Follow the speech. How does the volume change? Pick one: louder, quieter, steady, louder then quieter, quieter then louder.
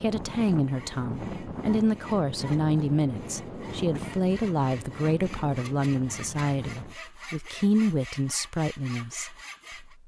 steady.